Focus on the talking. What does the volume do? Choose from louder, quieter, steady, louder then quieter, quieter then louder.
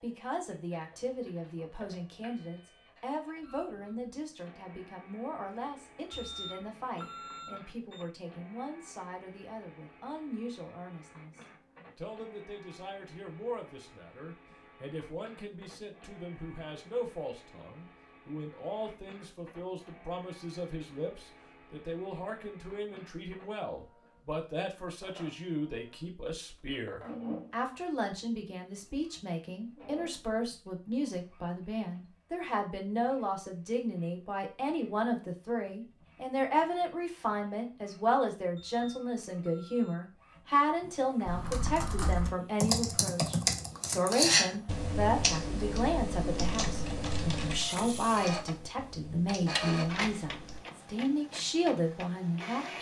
louder.